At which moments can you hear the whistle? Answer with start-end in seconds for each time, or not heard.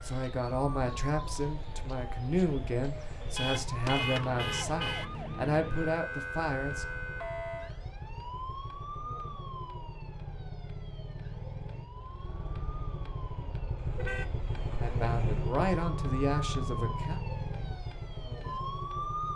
not heard.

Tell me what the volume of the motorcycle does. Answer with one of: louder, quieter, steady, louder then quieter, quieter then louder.
louder.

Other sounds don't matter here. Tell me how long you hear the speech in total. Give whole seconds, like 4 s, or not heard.
9 s.